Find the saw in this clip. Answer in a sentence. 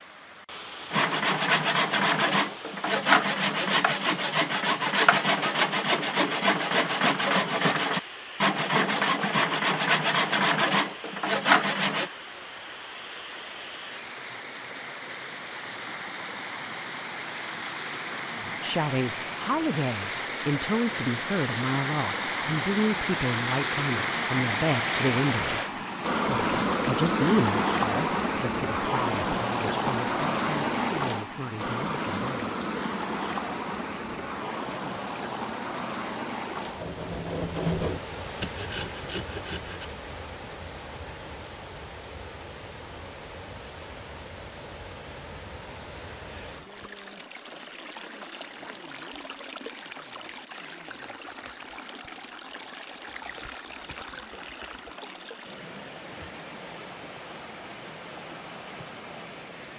You can hear the saw from 0.9 to 12.1 s and from 36.8 to 39.9 s.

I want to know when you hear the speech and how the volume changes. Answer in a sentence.
The speech can be heard from 18.4 to 32.5 s, getting quieter.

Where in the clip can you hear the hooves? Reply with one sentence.
You can't hear the hooves here.